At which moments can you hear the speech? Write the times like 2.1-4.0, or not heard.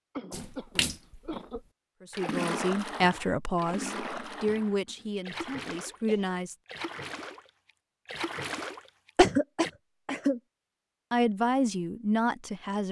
2.0-6.5, 11.1-12.8.